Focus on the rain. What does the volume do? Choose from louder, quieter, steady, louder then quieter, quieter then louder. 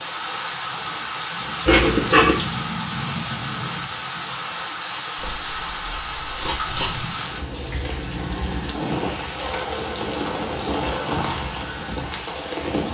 steady.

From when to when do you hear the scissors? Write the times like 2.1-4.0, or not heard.
1.6-2.4, 5.2-7.0, 9.8-10.8.